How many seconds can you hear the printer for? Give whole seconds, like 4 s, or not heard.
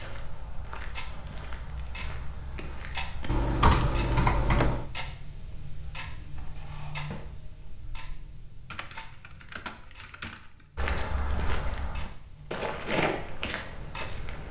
not heard.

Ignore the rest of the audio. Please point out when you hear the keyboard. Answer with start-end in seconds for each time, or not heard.
3.2-4.8, 8.7-10.4.